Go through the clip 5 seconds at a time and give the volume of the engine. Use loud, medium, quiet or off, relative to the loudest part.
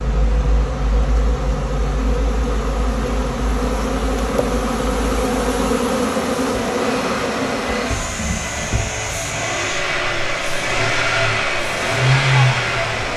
quiet, medium, loud.